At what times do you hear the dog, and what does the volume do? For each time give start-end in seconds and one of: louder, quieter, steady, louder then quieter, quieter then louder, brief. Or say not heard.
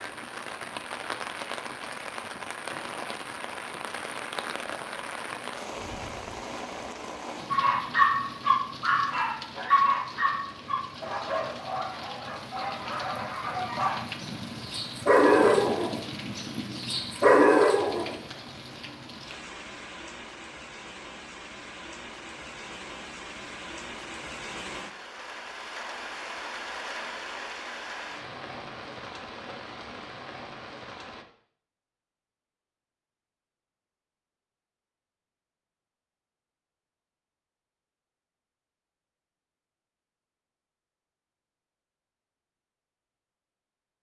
7.5-18.1 quieter then louder.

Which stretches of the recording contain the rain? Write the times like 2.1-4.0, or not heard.
0.0-31.2.